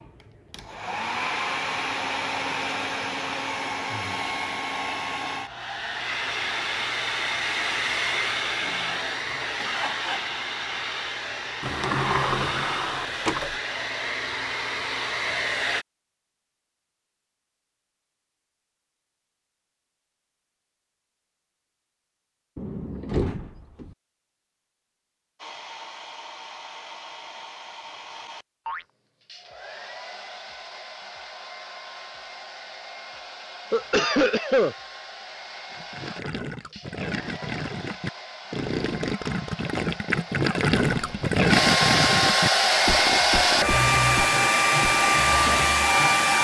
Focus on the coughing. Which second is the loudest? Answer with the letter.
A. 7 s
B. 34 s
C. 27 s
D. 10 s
B.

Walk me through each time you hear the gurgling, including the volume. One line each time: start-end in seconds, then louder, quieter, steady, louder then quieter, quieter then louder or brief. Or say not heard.
35.7-46.1 louder then quieter.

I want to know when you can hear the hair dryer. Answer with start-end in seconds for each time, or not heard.
0.0-15.8, 25.4-46.3.